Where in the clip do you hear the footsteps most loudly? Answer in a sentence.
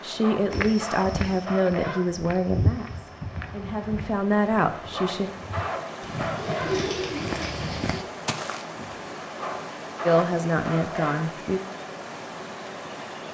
The volume of the footsteps peaks at 3 seconds.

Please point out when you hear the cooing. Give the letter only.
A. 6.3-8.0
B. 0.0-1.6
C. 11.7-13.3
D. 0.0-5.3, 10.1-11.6
A.